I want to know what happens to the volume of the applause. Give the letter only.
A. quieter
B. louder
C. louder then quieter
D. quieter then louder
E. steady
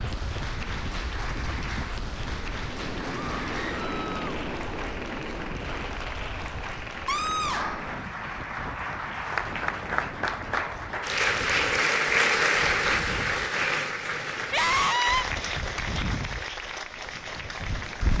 C.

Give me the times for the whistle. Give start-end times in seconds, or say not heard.
not heard.